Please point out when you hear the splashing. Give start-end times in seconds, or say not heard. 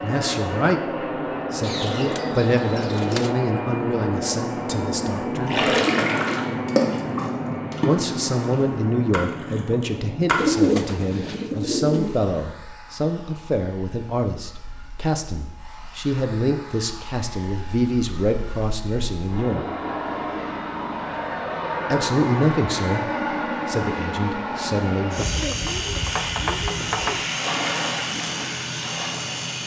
5.5-10.5, 26.9-29.6.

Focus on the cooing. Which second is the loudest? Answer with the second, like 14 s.
11 s.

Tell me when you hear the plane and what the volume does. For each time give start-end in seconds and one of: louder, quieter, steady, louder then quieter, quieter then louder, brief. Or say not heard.
0.0-29.6 quieter then louder.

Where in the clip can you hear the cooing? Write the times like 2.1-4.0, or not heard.
1.6-3.4, 10.3-12.2, 25.1-27.2.